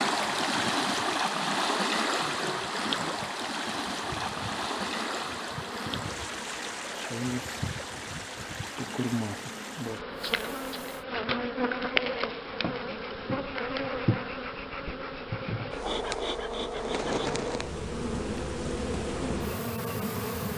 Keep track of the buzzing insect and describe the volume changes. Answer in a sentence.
The volume of the buzzing insect goes up.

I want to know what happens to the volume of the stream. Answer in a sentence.
The volume of the stream goes down.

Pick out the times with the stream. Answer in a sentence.
The stream can be heard from 0.0 to 11.1 s.